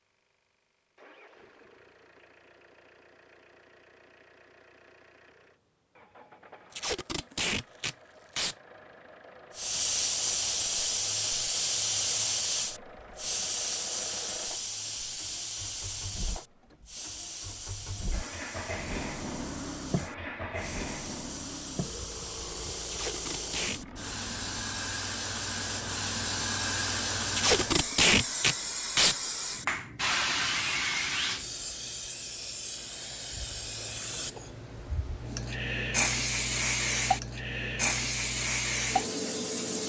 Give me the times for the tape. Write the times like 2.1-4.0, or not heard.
6.7-8.6, 22.9-23.8, 27.3-29.1.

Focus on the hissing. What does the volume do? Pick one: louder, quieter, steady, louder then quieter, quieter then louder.
quieter then louder.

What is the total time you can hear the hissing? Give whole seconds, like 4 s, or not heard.
30 s.